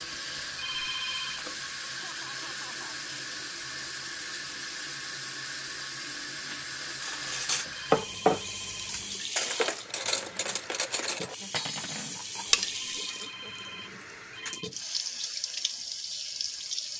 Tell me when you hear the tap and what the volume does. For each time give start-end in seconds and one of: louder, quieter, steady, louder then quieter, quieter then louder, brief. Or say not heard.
0.0-16.9 steady.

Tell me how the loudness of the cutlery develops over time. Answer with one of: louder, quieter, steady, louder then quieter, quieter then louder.
quieter.